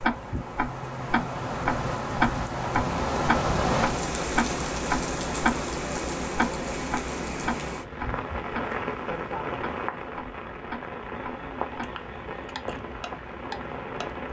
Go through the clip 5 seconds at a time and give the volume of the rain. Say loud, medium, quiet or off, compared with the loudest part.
loud, loud, medium.